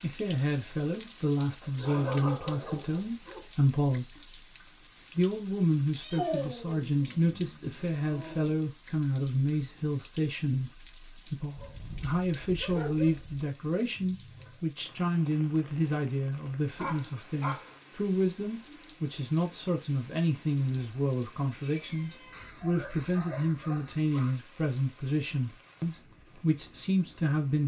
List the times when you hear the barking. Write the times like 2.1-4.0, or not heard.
1.6-3.5, 6.1-8.5, 11.6-13.4, 16.8-17.8, 22.3-24.4.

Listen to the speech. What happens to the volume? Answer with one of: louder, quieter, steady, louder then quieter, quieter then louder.
steady.